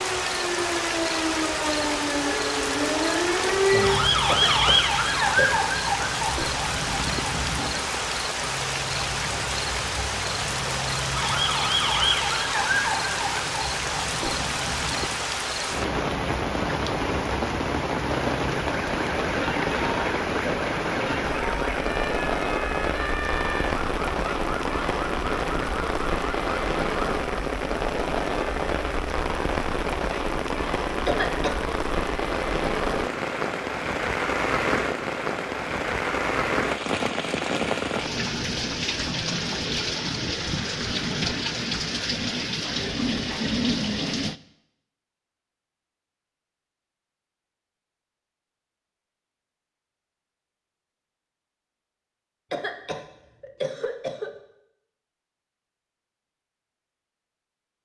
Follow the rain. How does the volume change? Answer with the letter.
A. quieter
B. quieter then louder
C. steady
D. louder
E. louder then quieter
C.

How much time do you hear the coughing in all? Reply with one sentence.
You can hear the coughing for 4 seconds altogether.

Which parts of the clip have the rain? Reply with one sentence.
You can hear the rain from 0.0 to 44.4 s.